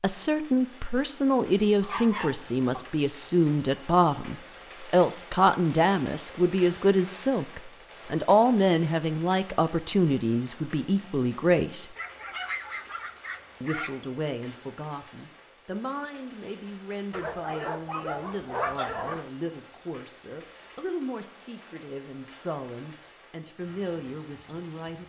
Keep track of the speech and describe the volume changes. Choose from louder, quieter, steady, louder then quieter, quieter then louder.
quieter.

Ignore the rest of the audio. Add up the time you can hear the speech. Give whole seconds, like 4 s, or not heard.
23 s.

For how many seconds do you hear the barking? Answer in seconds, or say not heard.
5 s.